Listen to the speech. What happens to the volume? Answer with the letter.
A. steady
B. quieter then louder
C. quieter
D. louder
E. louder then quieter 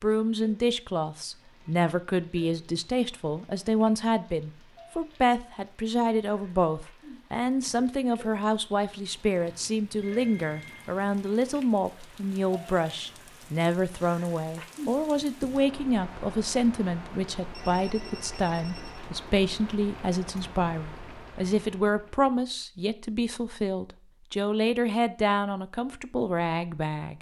A.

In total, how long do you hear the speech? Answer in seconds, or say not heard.
27 s.